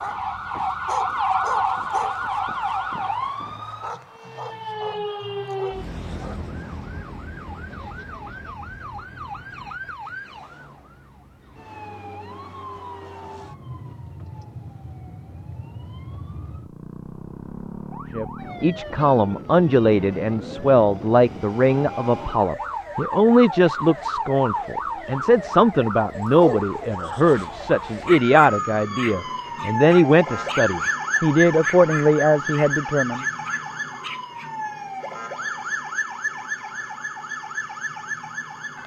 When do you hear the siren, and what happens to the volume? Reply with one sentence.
You can hear the siren from 0.0 to 38.8 s, getting quieter then louder.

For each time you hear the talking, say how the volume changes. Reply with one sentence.
The talking can be heard from 18.1 to 33.2 s, at a steady volume.